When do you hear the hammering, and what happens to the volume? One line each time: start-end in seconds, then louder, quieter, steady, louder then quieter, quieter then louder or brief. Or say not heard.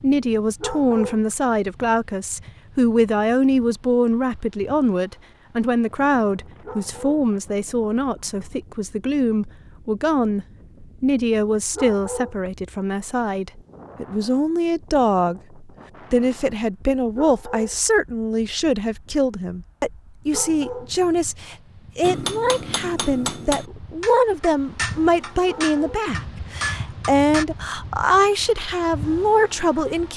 22.1-27.4 steady.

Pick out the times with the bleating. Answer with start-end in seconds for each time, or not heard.
not heard.